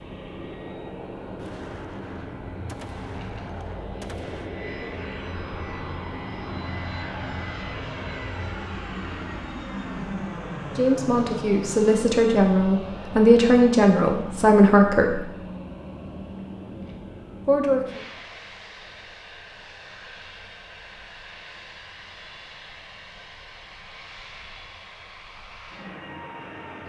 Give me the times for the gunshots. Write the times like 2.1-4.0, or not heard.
1.4-4.5.